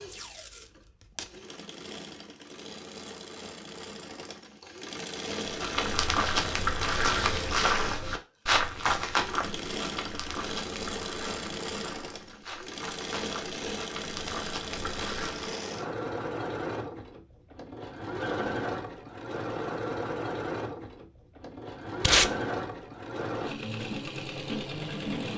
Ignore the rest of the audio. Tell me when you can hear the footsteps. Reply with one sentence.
The footsteps can be heard from 5.5 to 15.6 s.